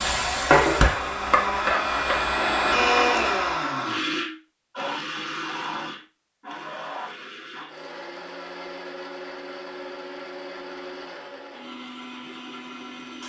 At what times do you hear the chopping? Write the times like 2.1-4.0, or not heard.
not heard.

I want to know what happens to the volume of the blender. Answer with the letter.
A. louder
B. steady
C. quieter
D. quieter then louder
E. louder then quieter
C.